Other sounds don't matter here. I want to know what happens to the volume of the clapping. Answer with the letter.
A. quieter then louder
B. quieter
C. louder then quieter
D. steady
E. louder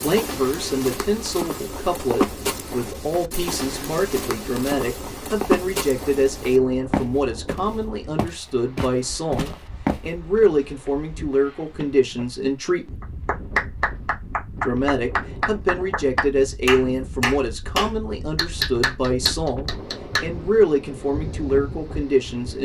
D.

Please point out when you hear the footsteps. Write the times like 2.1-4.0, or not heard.
0.0-10.5.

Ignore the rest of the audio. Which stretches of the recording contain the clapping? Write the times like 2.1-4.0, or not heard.
13.0-20.2.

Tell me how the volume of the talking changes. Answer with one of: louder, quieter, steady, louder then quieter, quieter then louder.
steady.